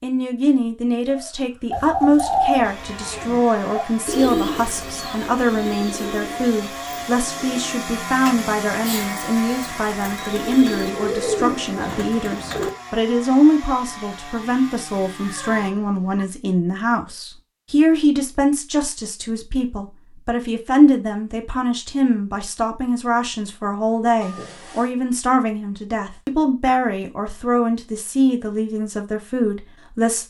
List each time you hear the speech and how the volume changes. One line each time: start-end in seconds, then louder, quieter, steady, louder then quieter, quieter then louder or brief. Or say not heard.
0.0-30.2 steady.